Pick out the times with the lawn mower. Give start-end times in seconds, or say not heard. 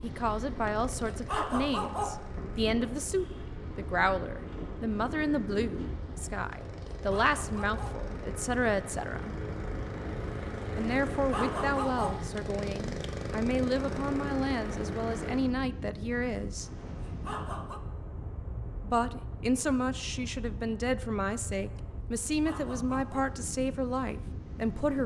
0.0-15.6.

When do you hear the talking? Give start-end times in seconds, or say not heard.
0.0-9.3, 10.8-16.7, 18.8-25.0.